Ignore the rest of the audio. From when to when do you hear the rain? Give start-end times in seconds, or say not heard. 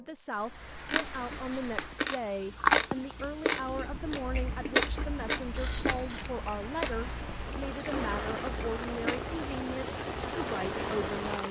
0.0-11.4.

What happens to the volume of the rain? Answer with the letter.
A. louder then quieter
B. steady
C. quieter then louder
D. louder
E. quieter
D.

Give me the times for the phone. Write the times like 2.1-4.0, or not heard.
5.5-6.3.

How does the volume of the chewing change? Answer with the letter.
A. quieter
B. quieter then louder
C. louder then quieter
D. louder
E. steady
C.